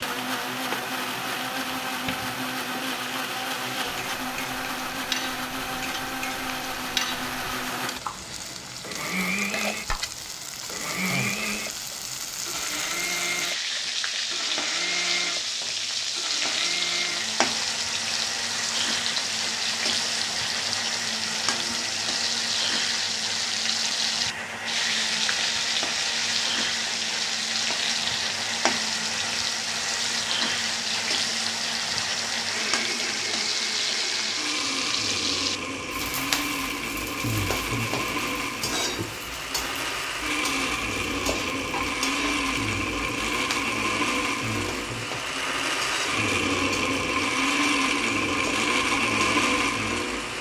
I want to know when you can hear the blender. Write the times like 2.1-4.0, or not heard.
0.0-50.3.